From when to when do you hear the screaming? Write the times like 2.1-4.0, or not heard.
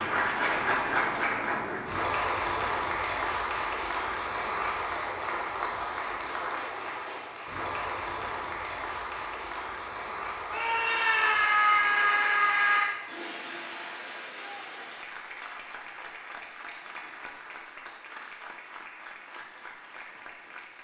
10.5-12.9.